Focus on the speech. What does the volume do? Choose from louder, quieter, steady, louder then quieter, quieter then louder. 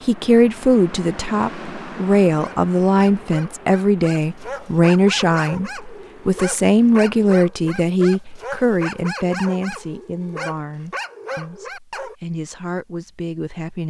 quieter.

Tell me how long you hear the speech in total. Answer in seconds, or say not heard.
14 s.